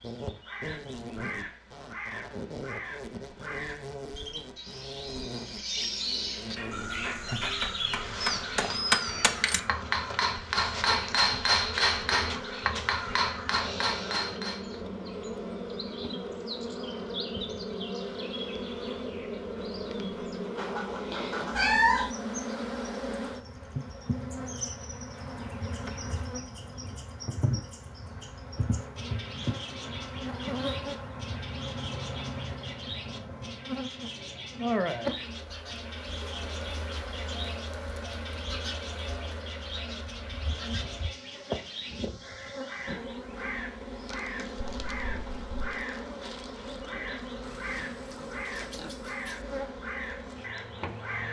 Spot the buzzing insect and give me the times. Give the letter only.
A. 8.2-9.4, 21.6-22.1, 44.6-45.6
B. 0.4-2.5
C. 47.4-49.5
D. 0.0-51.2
D.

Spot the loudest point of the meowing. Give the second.
22 s.